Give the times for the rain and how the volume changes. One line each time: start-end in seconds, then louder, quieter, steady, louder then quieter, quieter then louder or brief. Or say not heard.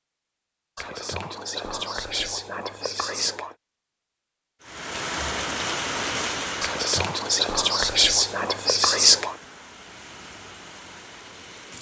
4.6-11.7 quieter.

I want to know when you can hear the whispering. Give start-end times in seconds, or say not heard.
0.8-3.5, 6.6-9.3.